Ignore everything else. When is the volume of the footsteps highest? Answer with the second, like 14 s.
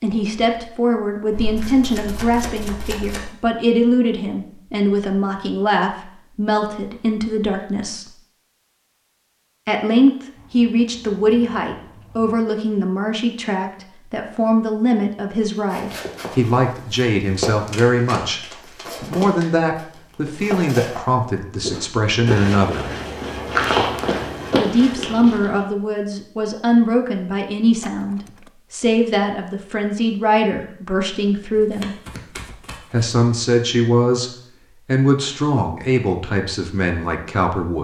24 s.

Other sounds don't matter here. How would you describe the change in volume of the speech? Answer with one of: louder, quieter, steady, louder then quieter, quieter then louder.
steady.